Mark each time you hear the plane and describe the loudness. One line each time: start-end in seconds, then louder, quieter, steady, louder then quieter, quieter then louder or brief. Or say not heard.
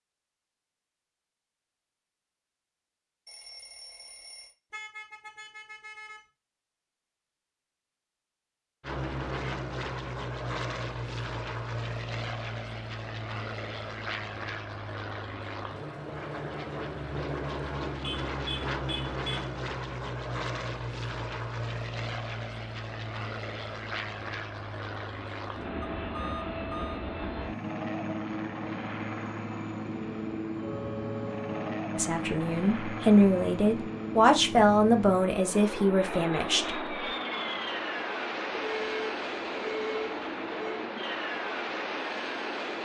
8.8-42.8 steady.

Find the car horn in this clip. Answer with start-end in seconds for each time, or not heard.
4.7-6.2, 18.0-19.5, 30.5-31.8.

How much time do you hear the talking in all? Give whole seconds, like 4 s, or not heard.
5 s.